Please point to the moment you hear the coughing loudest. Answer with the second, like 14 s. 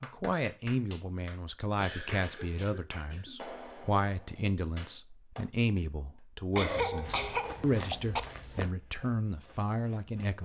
7 s.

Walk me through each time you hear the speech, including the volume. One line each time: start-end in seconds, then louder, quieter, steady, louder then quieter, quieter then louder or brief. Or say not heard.
0.0-10.4 steady.